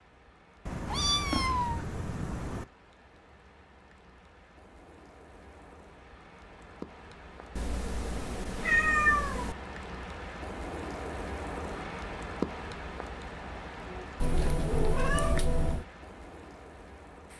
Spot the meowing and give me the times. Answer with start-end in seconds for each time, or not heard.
0.7-2.6, 7.5-9.6, 14.2-15.8.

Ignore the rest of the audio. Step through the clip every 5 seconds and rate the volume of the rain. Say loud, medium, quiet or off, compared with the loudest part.
quiet, medium, loud, medium.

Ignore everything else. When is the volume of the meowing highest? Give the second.
9 s.